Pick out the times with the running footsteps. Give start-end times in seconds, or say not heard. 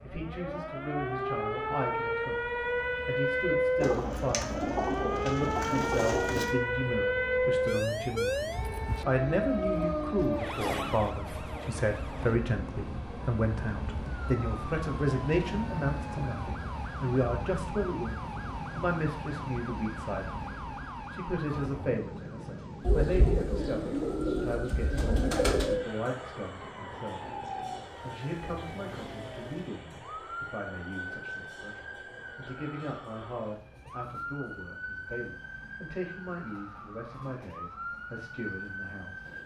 not heard.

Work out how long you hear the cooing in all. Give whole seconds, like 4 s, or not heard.
6 s.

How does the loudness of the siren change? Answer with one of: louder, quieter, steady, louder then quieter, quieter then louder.
quieter.